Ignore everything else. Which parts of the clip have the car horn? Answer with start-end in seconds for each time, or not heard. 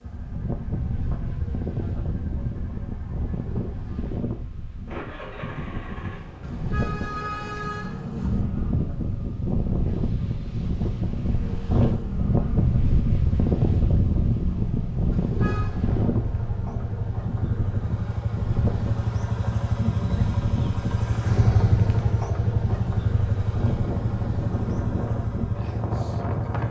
6.4-8.4, 15.1-15.8.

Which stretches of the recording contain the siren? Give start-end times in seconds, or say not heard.
not heard.